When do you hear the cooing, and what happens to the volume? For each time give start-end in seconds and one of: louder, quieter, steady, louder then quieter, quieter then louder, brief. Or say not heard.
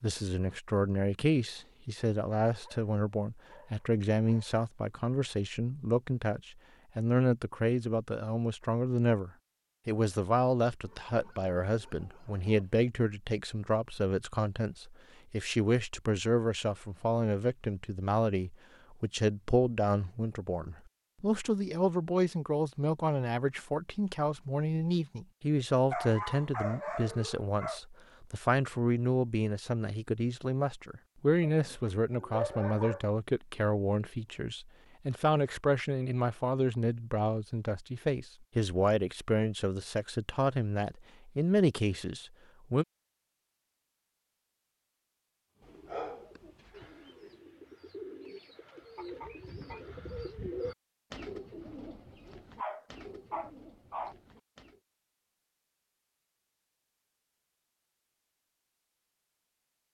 45.5-54.8 louder then quieter.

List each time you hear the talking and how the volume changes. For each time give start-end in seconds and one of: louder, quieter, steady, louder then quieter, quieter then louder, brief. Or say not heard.
0.0-42.9 steady.